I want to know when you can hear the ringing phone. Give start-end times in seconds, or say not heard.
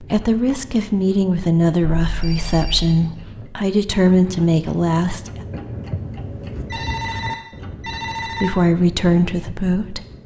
2.0-3.0, 6.7-8.6.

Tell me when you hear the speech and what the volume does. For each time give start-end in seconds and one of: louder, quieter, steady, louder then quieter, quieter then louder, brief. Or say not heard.
0.0-5.5 steady
8.4-10.0 brief.